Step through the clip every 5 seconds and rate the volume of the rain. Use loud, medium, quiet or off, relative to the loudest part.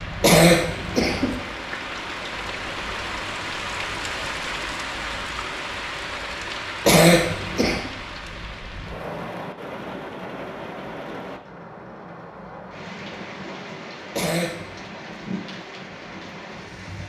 loud, loud, medium, medium.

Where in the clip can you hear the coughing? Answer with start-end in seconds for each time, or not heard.
0.2-1.4, 6.8-7.9, 14.1-14.8.